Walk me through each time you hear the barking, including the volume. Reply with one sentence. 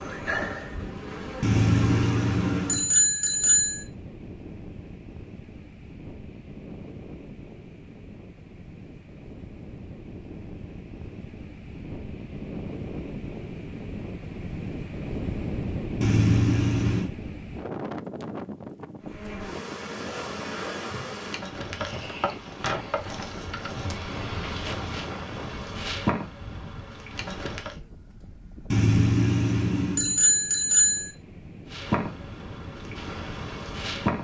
You can't hear the barking here.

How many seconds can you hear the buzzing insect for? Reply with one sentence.
The buzzing insect can be heard for 14 seconds in total.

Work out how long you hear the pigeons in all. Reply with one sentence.
You can't hear the pigeons here.